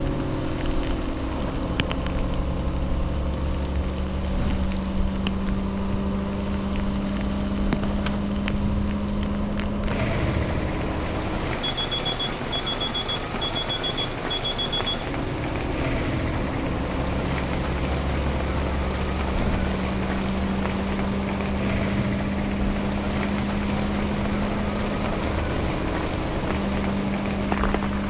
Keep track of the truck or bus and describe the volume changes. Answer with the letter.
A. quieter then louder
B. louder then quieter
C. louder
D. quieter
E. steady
E.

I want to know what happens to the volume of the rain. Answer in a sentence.
The volume of the rain goes up.